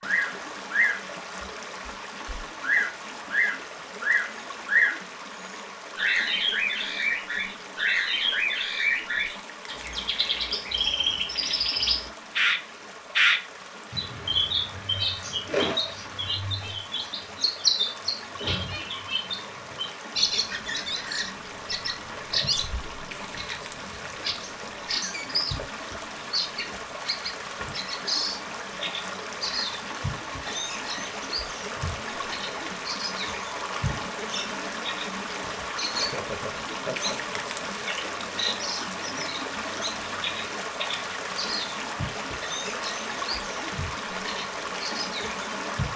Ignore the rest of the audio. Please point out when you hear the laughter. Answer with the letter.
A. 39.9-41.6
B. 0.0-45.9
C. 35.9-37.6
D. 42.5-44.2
C.